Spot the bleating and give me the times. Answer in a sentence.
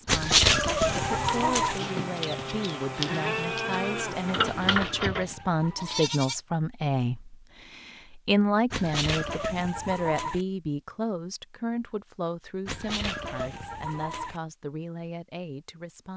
You can hear the bleating from 0.8 to 6.4 s.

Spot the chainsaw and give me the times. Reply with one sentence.
You can hear the chainsaw from 0.0 to 4.8 s.